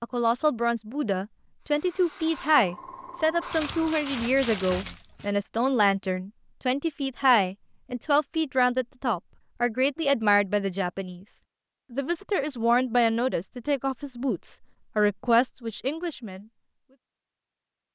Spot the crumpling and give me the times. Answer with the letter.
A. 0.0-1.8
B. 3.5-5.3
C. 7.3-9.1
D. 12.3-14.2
B.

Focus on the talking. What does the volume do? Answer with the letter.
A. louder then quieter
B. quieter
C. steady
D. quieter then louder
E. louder
C.